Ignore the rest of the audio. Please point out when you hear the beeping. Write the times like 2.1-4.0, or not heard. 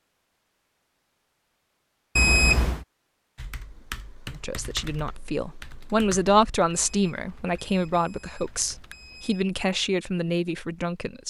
2.1-2.9, 6.7-9.4.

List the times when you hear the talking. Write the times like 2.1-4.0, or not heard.
4.3-11.2.